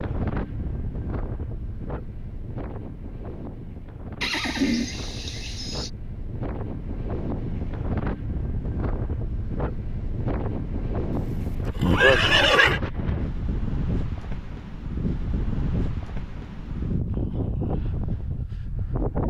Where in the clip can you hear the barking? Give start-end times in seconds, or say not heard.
not heard.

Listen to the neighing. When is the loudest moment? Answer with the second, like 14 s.
12 s.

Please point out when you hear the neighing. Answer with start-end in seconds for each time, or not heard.
4.2-5.9, 11.2-12.8.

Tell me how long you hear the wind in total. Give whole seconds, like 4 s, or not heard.
19 s.